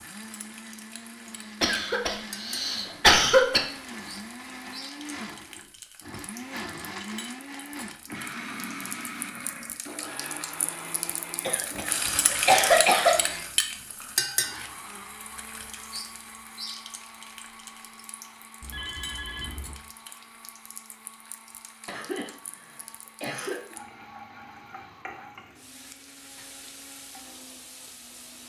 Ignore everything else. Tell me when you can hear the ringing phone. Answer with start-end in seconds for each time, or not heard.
11.7-12.4, 18.6-19.8.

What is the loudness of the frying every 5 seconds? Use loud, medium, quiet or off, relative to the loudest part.
quiet, quiet, loud, quiet, quiet, quiet.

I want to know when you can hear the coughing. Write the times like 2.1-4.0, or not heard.
1.6-3.6, 11.4-13.2, 21.9-23.6.